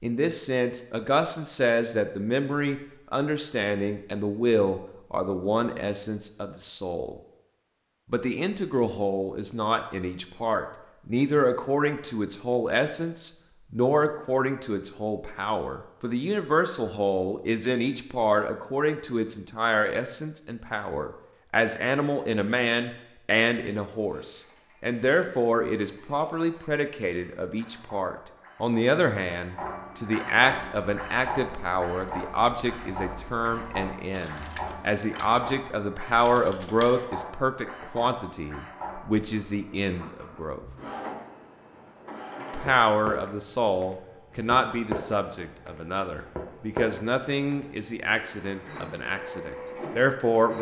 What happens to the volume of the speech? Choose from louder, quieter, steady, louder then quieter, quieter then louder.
steady.